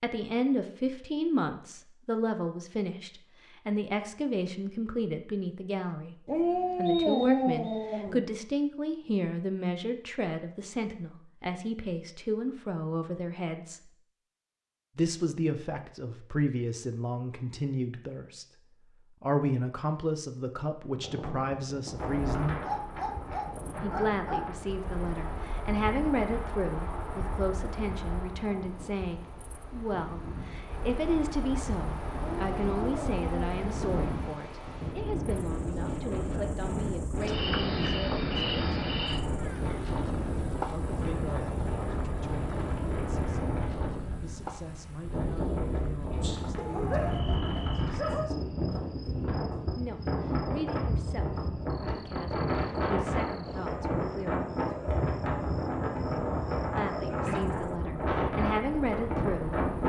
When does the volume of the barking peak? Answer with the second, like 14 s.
7 s.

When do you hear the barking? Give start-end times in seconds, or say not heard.
6.2-8.2, 22.6-24.4, 32.1-33.5, 46.5-48.3.